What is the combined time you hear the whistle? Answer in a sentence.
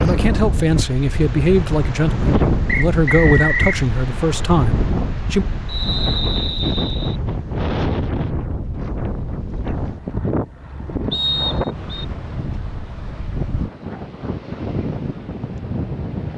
You can hear the whistle for 4 seconds altogether.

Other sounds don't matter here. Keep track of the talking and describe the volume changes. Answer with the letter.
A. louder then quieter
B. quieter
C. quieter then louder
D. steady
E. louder
D.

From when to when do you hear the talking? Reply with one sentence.
You can hear the talking from 0.0 to 5.5 s.